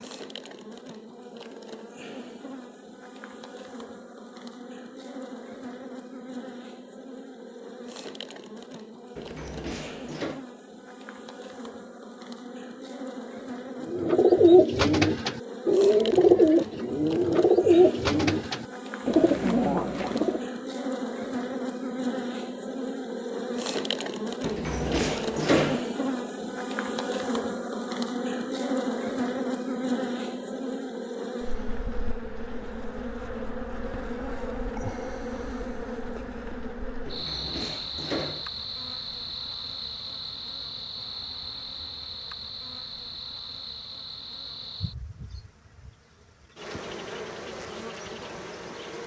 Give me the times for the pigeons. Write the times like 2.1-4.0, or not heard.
13.8-20.4.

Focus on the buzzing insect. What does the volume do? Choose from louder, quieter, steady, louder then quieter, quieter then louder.
louder then quieter.